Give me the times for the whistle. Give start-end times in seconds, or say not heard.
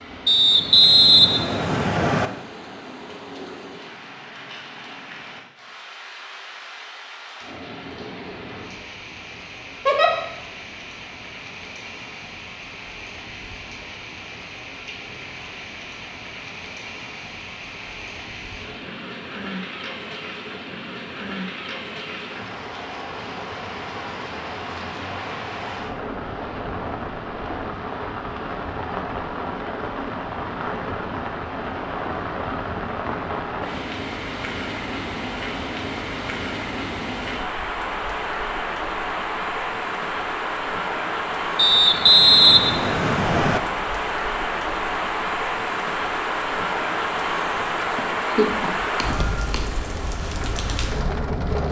0.2-2.3, 41.5-43.6.